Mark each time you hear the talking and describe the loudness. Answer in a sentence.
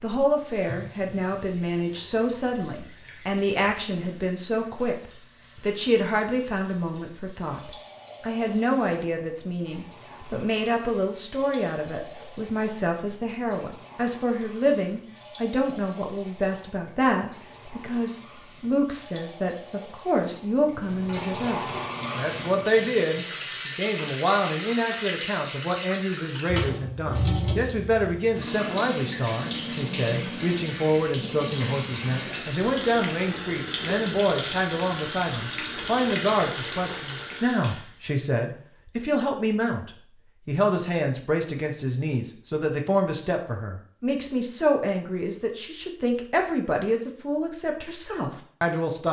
You can hear the talking from 0.0 to 49.0 s, at a steady volume.